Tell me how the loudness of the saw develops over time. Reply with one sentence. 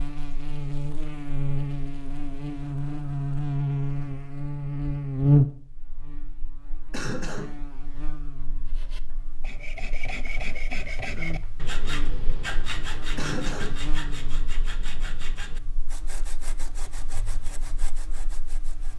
The volume of the saw goes down.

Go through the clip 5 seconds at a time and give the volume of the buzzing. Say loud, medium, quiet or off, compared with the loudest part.
loud, loud, quiet, quiet.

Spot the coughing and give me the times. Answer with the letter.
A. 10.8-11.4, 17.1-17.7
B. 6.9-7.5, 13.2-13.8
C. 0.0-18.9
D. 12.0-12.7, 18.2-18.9
B.